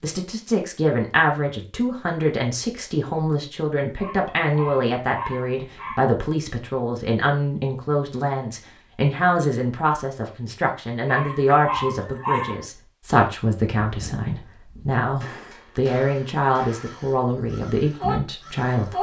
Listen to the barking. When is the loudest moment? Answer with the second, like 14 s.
12 s.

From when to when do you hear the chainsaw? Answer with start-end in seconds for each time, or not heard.
not heard.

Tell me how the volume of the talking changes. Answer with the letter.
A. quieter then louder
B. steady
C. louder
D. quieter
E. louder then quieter
B.